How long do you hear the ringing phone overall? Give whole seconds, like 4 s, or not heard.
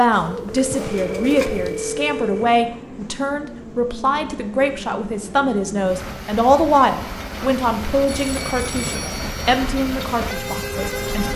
4 s.